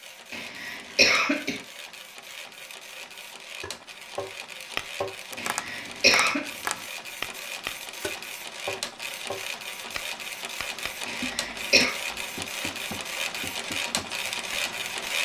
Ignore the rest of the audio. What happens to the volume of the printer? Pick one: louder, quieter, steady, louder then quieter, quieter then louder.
louder.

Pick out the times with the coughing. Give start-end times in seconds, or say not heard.
0.3-1.6, 5.3-6.4, 11.1-11.9.